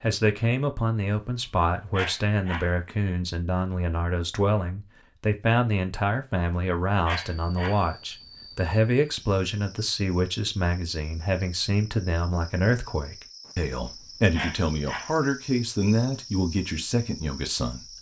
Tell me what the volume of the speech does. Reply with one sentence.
The loudness of the speech stays about the same.